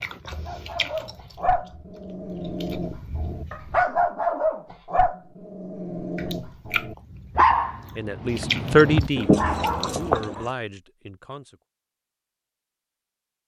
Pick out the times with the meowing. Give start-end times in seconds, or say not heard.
9.2-10.4.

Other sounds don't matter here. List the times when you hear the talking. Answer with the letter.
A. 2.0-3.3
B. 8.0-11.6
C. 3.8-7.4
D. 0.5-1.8
B.